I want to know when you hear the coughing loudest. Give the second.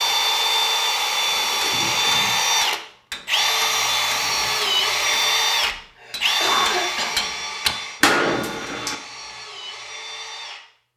7 s.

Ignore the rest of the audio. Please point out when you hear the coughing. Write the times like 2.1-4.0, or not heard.
1.6-2.3, 6.0-7.2.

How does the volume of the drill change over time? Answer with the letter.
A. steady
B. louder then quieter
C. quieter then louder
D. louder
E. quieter
E.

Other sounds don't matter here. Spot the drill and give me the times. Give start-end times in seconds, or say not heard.
0.0-10.7.